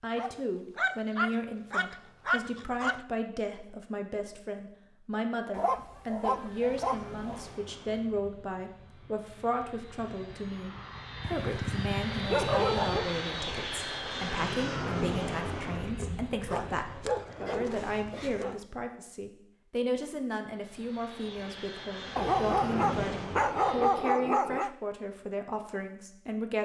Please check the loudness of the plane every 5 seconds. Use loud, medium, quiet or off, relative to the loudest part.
off, quiet, loud, loud, loud, off.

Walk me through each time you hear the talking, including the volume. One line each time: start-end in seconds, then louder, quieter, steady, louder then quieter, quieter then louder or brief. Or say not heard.
0.0-26.6 steady.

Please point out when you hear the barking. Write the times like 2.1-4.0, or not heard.
0.1-3.0, 5.5-7.5, 11.2-13.1, 16.4-18.6, 22.1-24.7.